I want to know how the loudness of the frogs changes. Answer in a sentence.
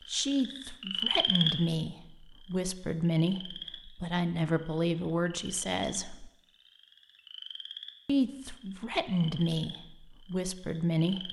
The volume of the frogs goes down.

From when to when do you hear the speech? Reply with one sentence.
You can hear the speech from 0.1 to 6.3 s and from 8.1 to 11.2 s.